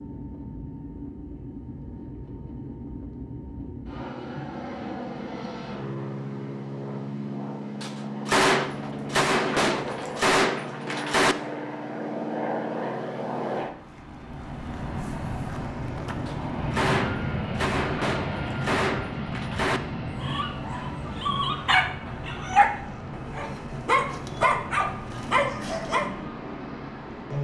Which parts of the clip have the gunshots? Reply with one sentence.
You can hear the gunshots from 7.8 to 11.3 s and from 16.2 to 19.8 s.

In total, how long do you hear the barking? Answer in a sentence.
The barking can be heard for 6 seconds in total.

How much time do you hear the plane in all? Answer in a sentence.
You can hear the plane for 27 seconds altogether.